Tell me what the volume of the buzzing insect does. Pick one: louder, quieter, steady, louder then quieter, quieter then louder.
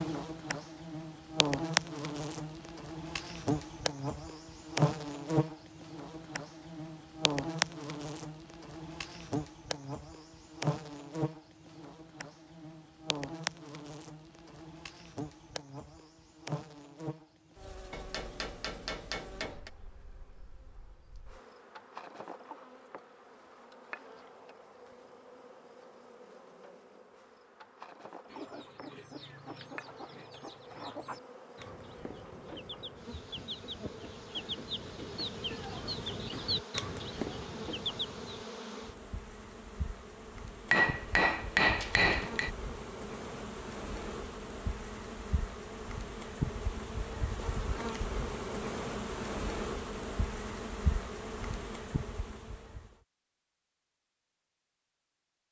quieter then louder.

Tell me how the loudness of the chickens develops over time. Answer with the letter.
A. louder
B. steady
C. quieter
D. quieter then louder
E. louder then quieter
A.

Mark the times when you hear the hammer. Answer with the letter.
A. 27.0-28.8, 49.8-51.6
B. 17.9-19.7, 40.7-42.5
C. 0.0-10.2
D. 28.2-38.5
B.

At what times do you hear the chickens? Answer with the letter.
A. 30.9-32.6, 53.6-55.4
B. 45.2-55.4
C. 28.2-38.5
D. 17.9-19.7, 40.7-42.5
C.